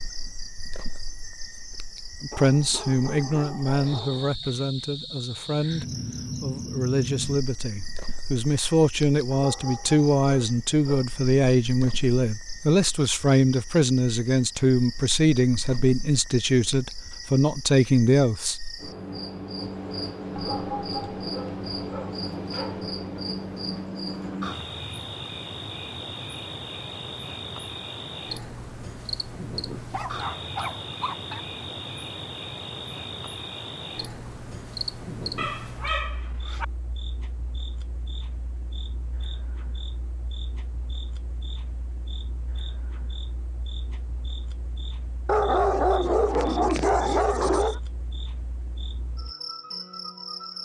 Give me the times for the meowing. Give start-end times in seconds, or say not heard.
not heard.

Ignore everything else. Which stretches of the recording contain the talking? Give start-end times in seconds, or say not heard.
2.2-18.6.